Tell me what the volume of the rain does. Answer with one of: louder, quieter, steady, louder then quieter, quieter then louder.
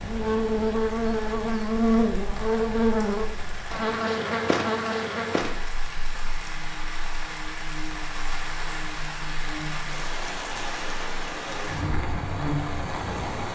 louder.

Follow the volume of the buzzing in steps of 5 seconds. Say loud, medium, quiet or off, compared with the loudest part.
loud, quiet, medium.